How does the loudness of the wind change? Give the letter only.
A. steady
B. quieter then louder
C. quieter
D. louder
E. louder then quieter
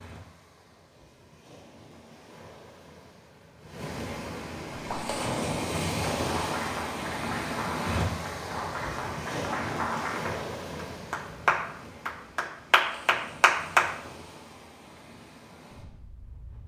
E.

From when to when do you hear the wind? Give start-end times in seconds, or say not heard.
0.0-16.6.